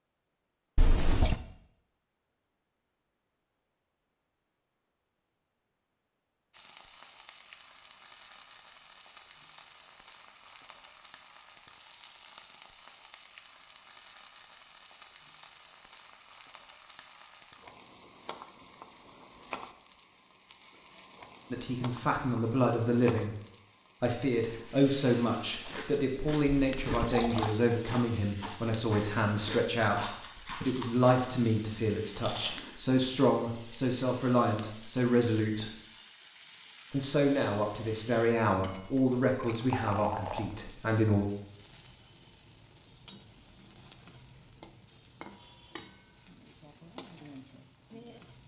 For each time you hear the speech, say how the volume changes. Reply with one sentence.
The speech can be heard briefly from 21.5 to 23.4 s; from 24.0 to 35.7 s, at a steady volume; and from 36.9 to 41.2 s, getting quieter.